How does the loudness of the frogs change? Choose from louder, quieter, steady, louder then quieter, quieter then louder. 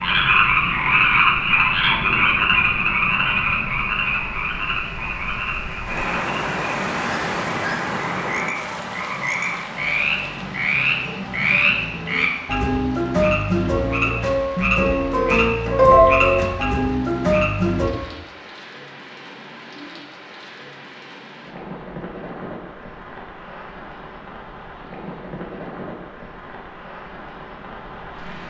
quieter then louder.